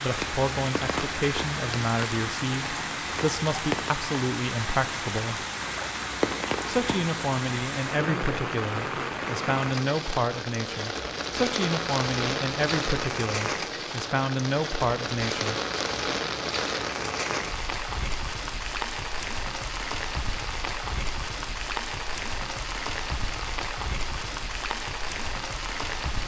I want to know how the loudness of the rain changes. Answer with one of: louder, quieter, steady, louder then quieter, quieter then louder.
steady.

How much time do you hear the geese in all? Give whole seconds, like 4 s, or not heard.
not heard.